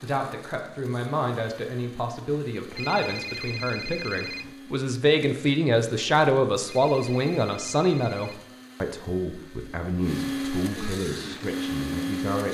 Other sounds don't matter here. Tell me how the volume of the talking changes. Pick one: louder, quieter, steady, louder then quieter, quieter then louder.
louder then quieter.